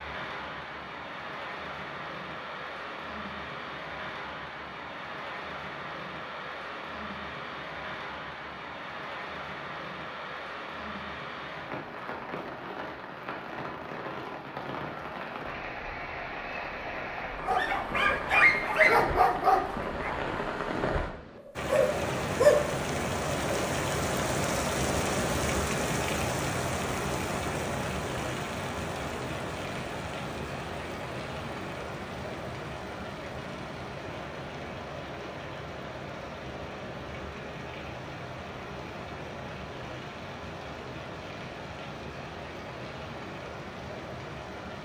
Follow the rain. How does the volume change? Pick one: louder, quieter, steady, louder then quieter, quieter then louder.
louder then quieter.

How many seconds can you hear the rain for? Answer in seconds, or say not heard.
45 s.